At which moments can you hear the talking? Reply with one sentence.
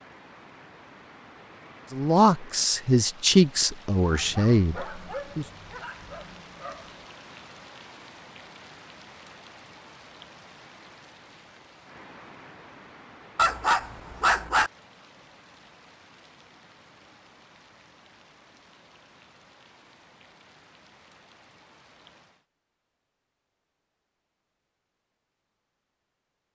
You can hear the talking from 1.9 to 5.5 s.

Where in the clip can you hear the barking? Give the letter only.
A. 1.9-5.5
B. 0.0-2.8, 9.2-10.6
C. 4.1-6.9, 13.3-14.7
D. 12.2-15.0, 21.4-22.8
C.